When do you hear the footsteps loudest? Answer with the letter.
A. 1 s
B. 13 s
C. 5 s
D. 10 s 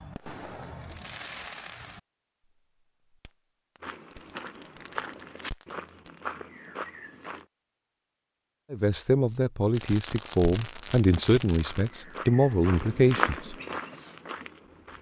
B.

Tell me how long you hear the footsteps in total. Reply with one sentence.
You can hear the footsteps for 7 seconds altogether.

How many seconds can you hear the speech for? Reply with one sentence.
You can hear the speech for 5 seconds altogether.